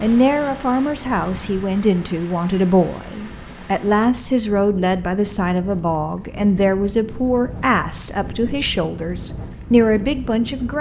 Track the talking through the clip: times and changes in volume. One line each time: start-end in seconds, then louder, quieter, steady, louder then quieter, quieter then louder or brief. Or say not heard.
0.0-10.7 steady.